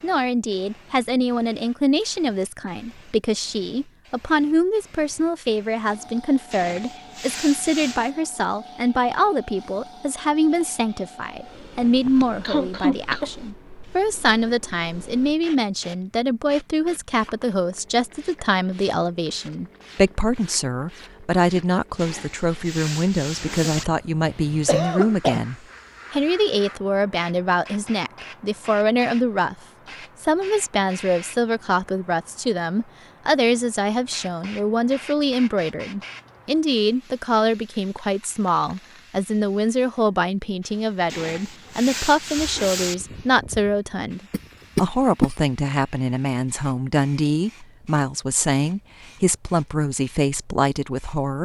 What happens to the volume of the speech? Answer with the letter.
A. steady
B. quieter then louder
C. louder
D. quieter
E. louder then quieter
A.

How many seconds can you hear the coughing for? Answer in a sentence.
The coughing can be heard for 4 seconds in total.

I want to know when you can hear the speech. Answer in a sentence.
You can hear the speech from 0.0 to 29.6 s and from 30.2 to 51.3 s.